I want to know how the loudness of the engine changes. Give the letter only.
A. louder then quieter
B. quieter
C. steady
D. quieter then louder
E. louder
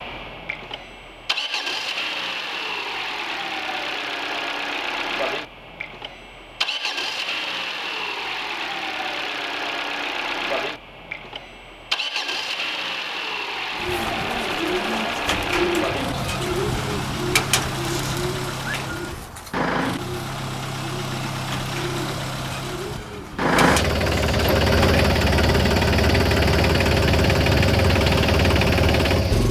E.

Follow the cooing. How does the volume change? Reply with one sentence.
The loudness of the cooing goes down.